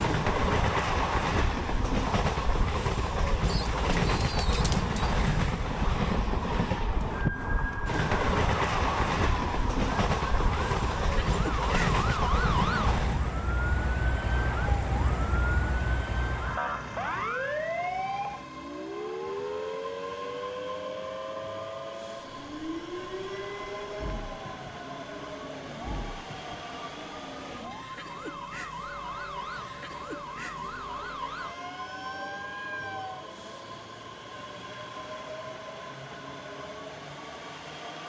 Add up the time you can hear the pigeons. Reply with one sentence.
The pigeons can be heard for 2 seconds in total.